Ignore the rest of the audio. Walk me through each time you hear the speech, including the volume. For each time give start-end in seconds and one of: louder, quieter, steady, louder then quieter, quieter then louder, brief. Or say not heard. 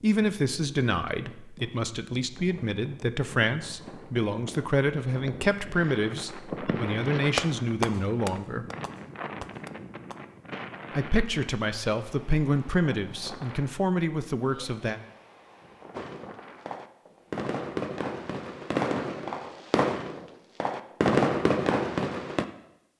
0.0-8.7 steady
10.9-15.0 steady.